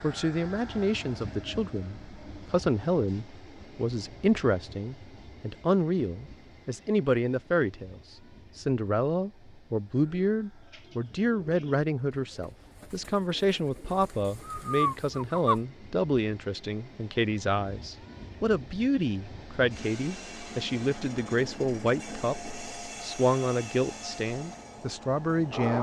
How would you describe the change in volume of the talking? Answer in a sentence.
The volume of the talking stays about the same.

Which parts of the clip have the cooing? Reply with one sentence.
The cooing can be heard from 10.1 to 15.6 s.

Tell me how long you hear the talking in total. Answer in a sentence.
The talking can be heard for 26 seconds in total.